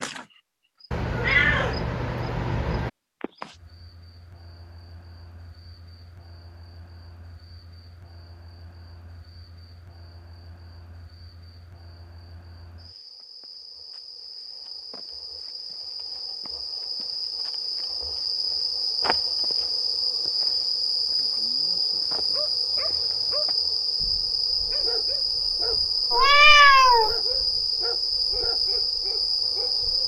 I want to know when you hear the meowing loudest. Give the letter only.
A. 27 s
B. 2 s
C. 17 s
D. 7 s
A.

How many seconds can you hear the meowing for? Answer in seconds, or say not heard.
3 s.